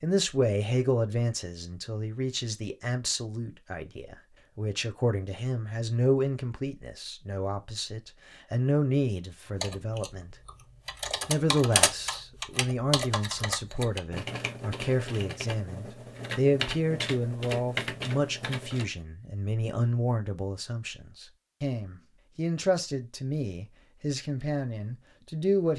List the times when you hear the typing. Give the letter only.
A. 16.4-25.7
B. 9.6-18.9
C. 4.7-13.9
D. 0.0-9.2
B.